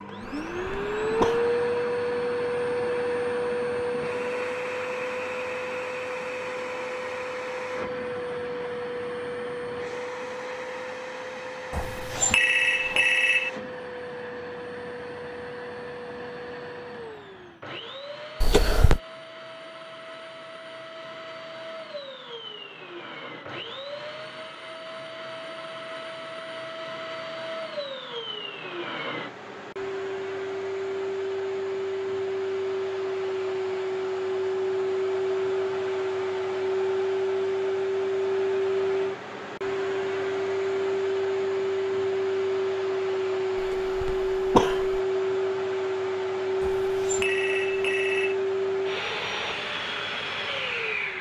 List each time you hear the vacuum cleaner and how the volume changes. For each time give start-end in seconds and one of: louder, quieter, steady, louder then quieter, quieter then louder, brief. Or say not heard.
0.0-51.1 quieter then louder.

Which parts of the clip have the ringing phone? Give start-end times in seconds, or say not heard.
11.7-13.5, 46.6-48.4.